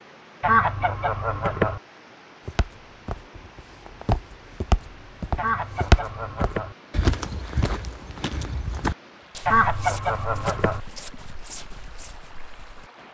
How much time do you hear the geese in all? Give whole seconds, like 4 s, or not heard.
4 s.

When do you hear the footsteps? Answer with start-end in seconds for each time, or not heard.
2.5-12.9.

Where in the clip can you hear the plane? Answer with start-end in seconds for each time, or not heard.
not heard.